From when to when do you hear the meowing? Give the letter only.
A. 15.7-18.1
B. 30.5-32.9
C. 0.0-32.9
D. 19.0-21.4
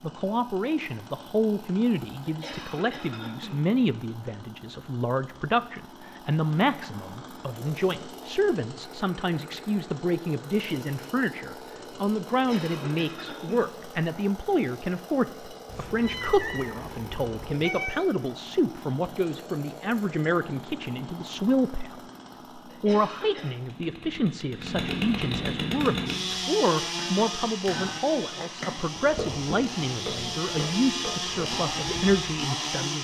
A.